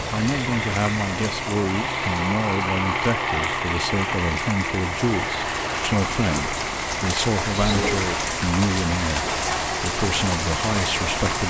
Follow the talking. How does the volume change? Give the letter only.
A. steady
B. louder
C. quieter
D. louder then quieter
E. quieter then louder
A.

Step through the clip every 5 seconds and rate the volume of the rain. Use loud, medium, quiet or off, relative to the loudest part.
medium, loud, loud.